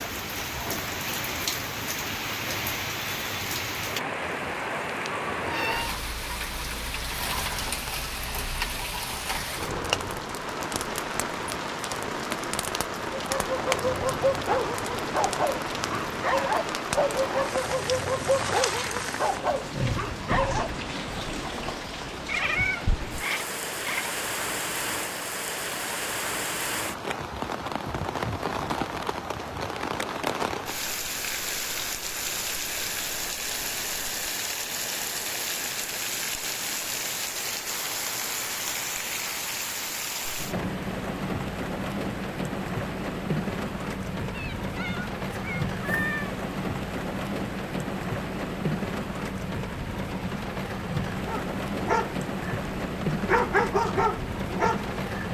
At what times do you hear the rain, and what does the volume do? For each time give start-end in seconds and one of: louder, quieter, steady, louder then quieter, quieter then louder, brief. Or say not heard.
0.0-55.2 steady.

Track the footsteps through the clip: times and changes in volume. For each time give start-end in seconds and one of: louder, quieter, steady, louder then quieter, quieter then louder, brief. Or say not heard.
not heard.